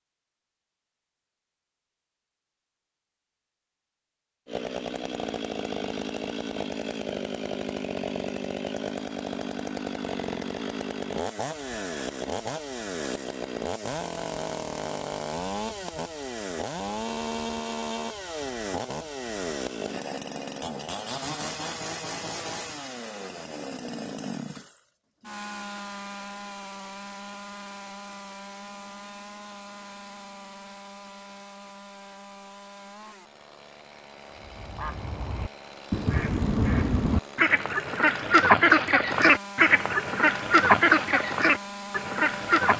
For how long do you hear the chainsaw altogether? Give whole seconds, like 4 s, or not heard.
38 s.